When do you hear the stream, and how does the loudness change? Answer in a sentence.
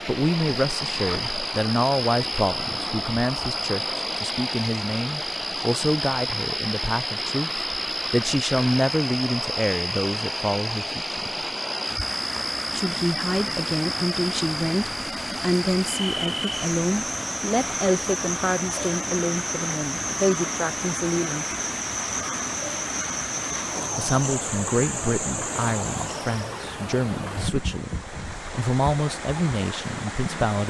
The stream can be heard from 0.0 to 30.6 s, at a steady volume.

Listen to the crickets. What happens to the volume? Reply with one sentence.
The loudness of the crickets stays about the same.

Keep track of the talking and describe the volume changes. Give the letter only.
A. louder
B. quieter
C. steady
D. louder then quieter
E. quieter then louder
C.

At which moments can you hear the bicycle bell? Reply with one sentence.
You can't hear the bicycle bell here.